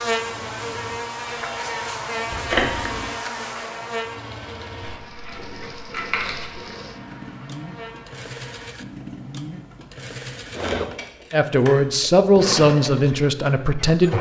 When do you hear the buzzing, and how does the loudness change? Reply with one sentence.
You can hear the buzzing from 0.0 to 8.8 s, getting quieter.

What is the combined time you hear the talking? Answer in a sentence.
You can hear the talking for 3 seconds altogether.